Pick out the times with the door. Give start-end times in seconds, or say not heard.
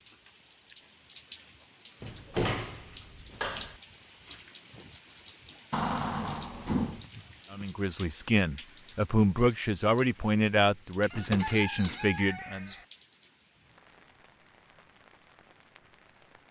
2.0-3.8, 5.7-7.0, 11.1-12.0.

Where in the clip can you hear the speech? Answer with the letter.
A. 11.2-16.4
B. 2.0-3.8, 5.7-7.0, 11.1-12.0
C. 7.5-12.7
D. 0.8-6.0
C.